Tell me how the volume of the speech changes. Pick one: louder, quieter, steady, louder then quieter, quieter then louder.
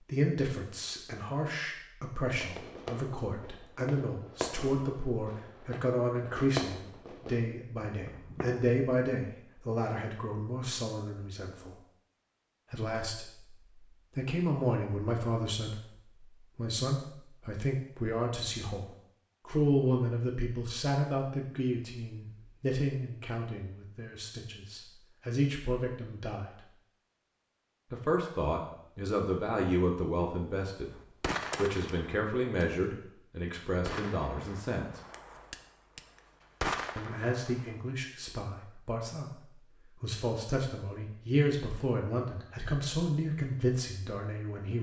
steady.